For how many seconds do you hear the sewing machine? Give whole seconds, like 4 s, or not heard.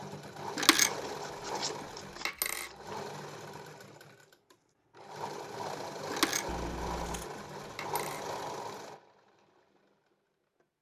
11 s.